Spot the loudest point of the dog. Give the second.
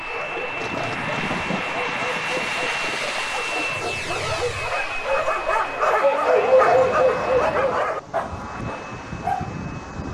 7 s.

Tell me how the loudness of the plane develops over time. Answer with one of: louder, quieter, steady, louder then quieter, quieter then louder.
quieter.